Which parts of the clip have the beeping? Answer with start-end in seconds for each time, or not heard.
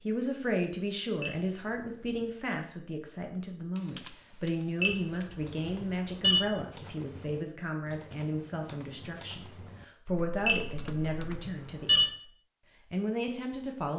1.2-2.2, 4.8-6.4, 10.4-12.1.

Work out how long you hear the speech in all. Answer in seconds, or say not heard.
13 s.